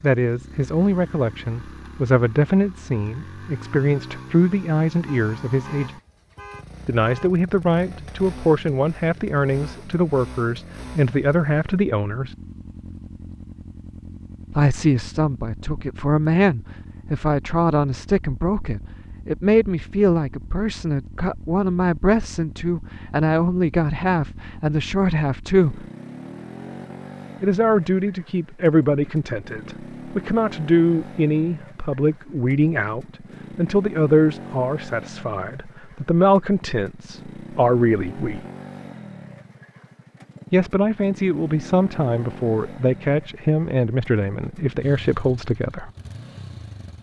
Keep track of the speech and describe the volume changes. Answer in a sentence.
The loudness of the speech stays about the same.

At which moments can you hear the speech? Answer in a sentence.
You can hear the speech from 0.0 to 5.9 s, from 6.8 to 12.3 s, from 14.5 to 25.9 s, from 27.4 to 38.4 s and from 40.5 to 45.9 s.